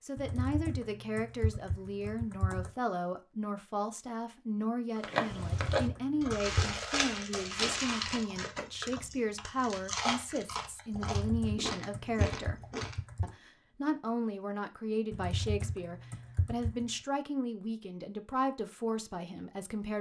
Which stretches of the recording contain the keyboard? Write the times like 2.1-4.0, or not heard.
0.1-2.7, 5.3-6.8, 10.9-13.3, 15.1-16.9.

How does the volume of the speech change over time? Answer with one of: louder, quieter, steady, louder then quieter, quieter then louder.
steady.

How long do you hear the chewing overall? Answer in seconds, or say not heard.
8 s.